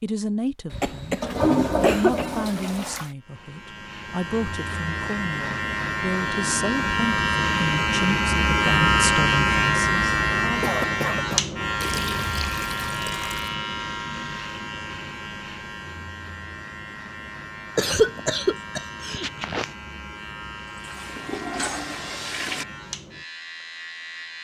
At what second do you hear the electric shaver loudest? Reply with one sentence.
The volume of the electric shaver peaks at 9 seconds.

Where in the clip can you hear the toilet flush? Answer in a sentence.
The toilet flush can be heard from 0.7 to 3.1 s, from 11.8 to 13.6 s and from 20.7 to 22.6 s.